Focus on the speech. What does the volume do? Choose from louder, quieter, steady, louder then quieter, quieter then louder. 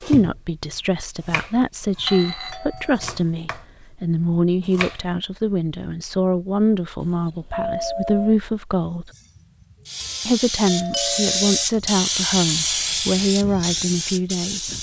steady.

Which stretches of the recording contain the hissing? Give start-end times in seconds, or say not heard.
9.1-14.7.